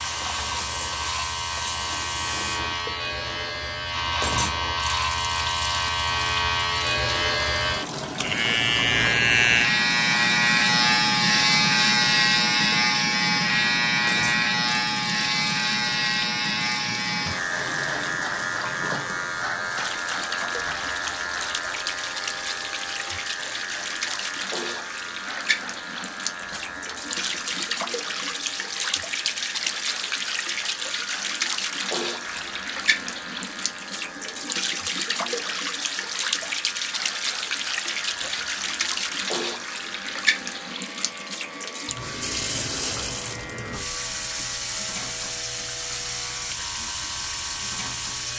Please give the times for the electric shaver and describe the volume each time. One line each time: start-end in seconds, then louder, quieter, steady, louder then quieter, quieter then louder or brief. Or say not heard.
0.0-48.3 quieter.